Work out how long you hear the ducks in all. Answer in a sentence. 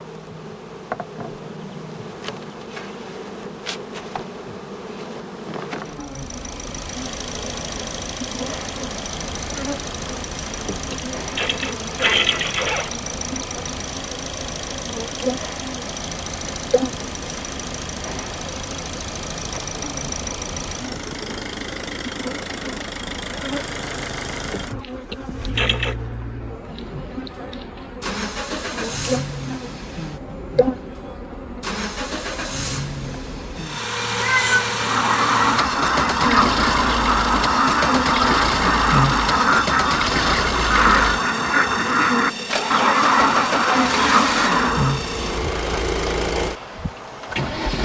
You can hear the ducks for 10 seconds altogether.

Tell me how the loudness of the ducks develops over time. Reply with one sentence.
The loudness of the ducks stays about the same.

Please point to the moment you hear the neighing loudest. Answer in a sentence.
The loudest moment of the neighing is at 12 seconds.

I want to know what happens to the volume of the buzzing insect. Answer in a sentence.
The volume of the buzzing insect goes up.